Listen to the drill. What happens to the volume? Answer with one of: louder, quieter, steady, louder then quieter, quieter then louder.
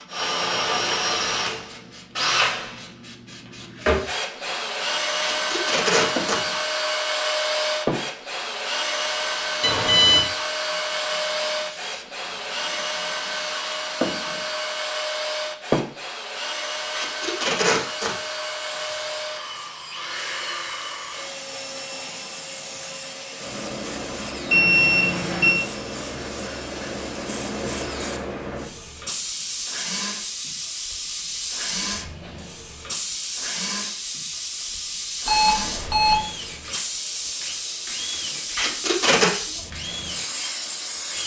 quieter.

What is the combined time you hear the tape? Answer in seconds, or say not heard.
3 s.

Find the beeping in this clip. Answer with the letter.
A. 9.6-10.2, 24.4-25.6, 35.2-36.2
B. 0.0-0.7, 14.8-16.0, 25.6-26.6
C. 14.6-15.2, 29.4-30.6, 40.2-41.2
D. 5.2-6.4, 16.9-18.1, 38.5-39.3
A.